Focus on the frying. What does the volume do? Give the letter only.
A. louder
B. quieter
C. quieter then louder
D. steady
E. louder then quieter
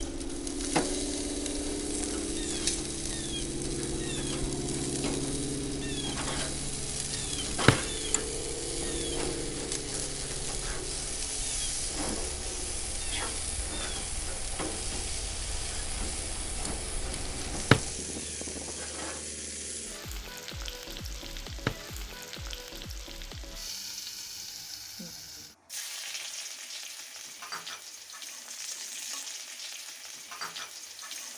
B.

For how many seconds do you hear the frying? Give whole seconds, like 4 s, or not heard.
31 s.